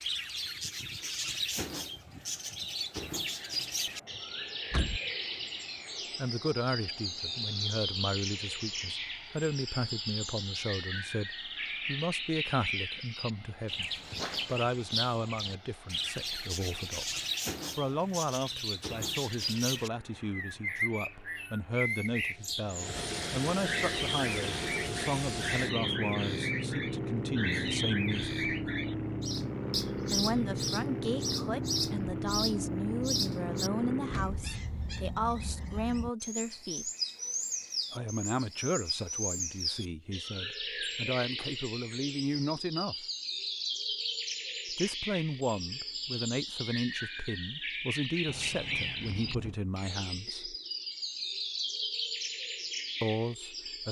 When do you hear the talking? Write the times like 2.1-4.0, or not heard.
6.2-28.3, 30.1-36.9, 37.9-43.0, 44.7-50.5, 53.0-53.8.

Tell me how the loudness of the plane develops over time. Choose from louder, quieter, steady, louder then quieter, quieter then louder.
louder.